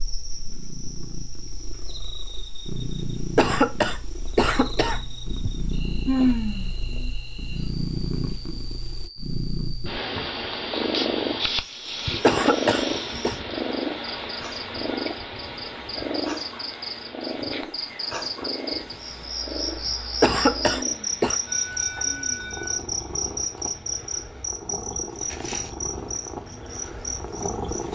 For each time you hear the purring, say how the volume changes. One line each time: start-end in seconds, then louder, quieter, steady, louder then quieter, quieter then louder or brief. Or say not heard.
0.0-27.9 louder then quieter.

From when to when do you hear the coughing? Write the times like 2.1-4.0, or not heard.
3.4-5.5, 12.2-13.3, 20.2-21.4.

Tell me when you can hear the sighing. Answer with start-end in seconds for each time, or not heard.
6.0-6.8, 20.8-22.8.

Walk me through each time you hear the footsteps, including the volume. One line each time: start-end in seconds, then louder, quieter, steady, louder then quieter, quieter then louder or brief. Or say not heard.
not heard.